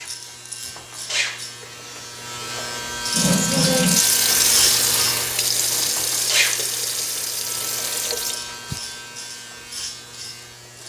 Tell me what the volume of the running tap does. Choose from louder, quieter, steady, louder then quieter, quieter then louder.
quieter.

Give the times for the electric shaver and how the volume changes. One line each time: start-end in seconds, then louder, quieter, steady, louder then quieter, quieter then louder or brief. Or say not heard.
0.0-10.8 louder then quieter.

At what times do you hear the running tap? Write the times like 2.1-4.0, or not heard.
3.1-8.8.